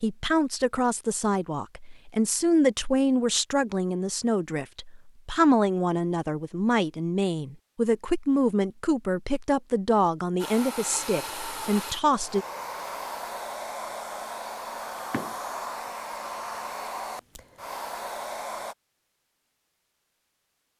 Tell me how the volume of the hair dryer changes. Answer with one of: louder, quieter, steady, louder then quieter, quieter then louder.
steady.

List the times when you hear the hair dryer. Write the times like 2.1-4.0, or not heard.
10.3-18.8.